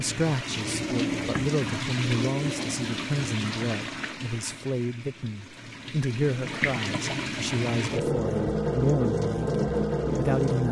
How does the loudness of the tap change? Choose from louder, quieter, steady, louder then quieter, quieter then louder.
quieter then louder.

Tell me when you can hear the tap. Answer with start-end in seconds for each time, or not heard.
0.0-10.6.